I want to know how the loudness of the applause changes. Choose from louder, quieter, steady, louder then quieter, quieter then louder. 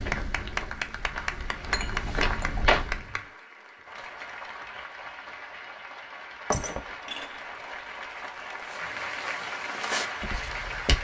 quieter then louder.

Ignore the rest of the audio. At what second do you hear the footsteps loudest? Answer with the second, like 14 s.
3 s.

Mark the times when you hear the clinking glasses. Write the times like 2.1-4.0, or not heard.
1.7-3.3, 6.5-7.8.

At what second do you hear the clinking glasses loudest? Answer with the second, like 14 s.
7 s.